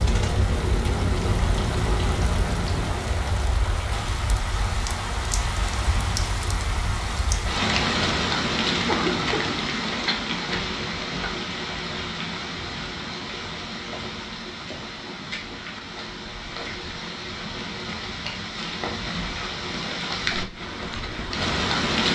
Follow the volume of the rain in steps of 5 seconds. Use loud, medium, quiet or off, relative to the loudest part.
medium, loud, medium, medium, loud.